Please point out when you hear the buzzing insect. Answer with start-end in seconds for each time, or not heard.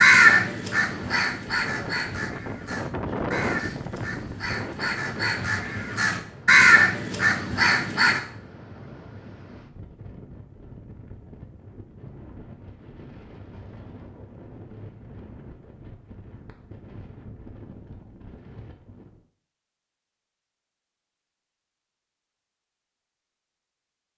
not heard.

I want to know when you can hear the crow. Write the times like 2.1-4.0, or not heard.
0.0-8.2.